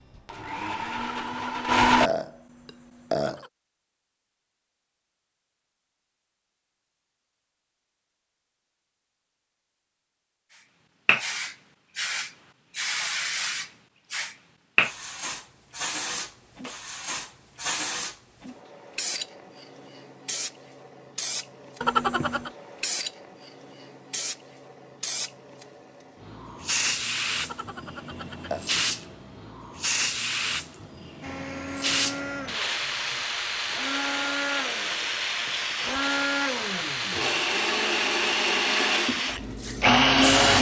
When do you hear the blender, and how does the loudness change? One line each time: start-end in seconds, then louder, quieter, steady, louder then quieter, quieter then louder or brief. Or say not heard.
0.0-2.1 brief
31.2-40.5 louder.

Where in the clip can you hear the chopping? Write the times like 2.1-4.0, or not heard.
not heard.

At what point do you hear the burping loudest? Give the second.
22 s.